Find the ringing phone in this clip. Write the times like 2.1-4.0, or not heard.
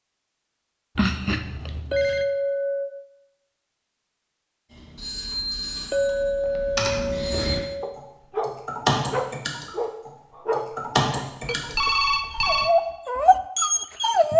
0.9-2.2, 5.0-7.7, 11.6-12.7.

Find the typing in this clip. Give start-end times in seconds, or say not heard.
4.7-12.4.